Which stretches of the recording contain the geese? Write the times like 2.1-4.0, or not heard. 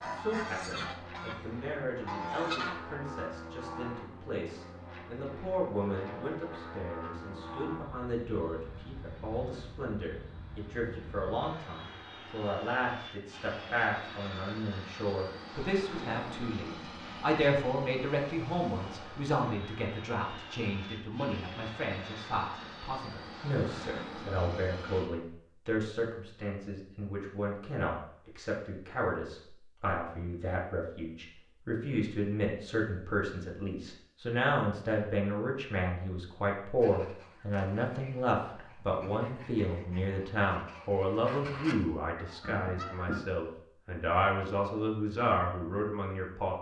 0.0-1.4, 2.0-3.0, 36.8-43.2.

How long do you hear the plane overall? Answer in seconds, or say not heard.
25 s.